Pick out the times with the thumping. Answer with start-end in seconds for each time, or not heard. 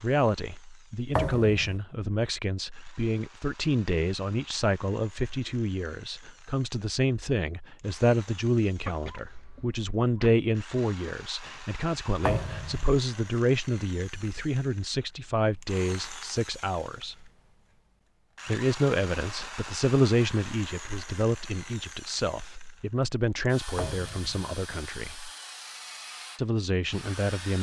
1.1-1.8, 12.2-12.9, 23.8-24.4.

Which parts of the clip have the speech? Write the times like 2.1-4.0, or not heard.
0.0-17.2, 18.4-25.3, 26.4-27.5.